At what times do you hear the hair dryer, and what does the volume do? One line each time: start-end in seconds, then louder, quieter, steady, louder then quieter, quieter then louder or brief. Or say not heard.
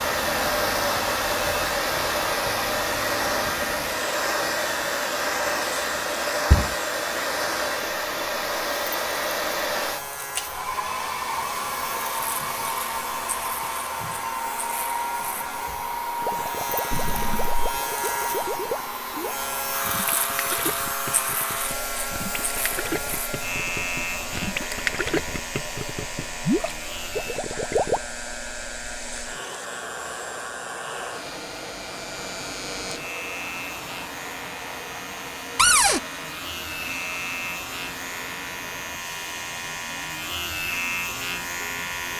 0.0-42.1 quieter.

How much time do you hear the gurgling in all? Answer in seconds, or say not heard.
12 s.